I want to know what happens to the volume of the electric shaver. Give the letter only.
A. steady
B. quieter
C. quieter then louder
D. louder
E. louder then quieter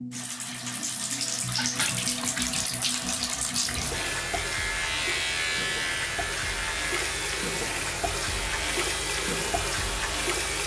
B.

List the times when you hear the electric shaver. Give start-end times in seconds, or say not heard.
3.9-10.6.